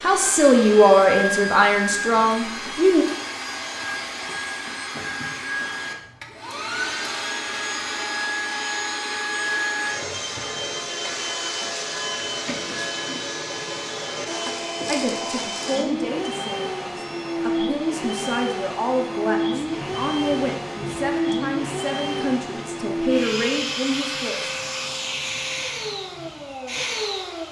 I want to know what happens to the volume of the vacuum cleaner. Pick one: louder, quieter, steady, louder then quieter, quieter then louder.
steady.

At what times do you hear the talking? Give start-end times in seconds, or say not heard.
0.0-3.0, 14.8-24.5.